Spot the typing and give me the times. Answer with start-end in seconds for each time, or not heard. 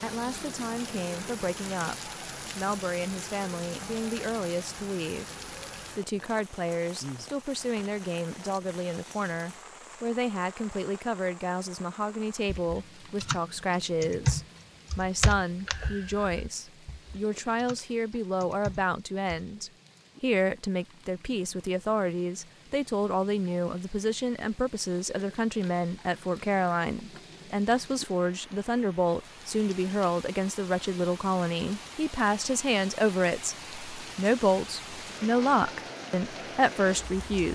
12.7-13.4, 14.0-17.8, 18.4-19.4.